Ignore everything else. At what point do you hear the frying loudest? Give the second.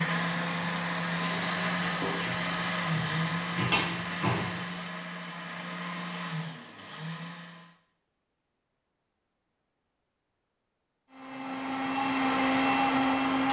4 s.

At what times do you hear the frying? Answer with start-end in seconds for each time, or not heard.
0.2-4.8.